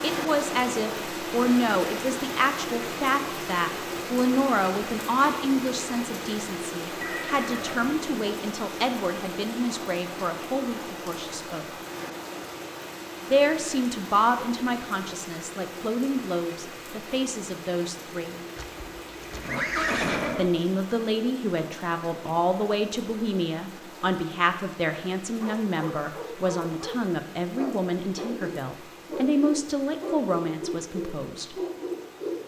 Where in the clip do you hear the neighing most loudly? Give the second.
20 s.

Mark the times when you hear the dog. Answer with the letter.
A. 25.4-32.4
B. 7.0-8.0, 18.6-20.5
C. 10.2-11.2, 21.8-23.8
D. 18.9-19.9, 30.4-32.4
A.